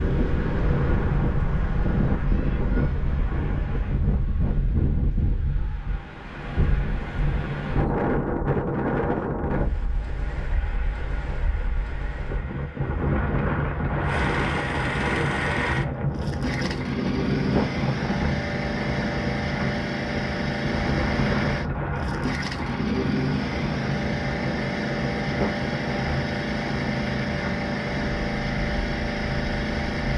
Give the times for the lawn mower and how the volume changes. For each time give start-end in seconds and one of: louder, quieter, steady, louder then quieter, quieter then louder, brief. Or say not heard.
10.2-30.1 louder.